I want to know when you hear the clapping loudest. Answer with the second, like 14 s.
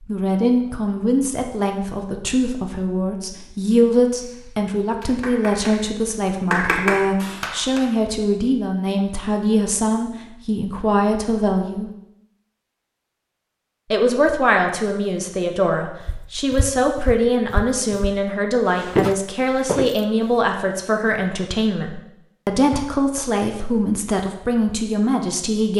7 s.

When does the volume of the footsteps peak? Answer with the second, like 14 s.
19 s.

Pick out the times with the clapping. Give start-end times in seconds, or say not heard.
4.2-5.9, 6.5-8.1.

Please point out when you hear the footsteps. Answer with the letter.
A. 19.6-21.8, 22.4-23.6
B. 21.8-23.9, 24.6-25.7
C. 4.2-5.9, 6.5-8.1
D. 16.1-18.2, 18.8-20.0
D.